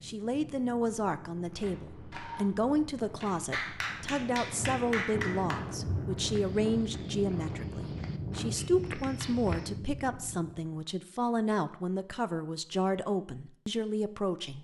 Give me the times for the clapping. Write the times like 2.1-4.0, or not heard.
3.5-5.5.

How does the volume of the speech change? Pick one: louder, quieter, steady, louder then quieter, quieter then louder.
steady.